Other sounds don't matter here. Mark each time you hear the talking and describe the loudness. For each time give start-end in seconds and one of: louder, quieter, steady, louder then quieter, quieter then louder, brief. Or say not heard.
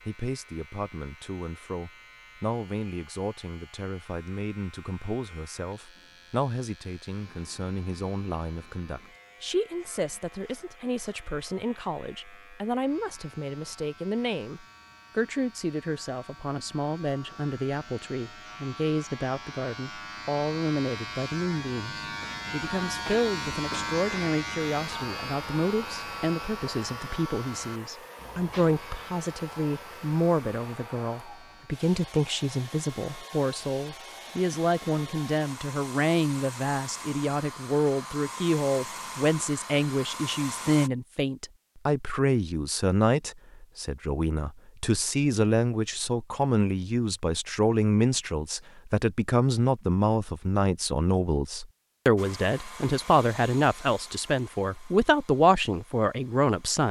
0.0-56.8 louder.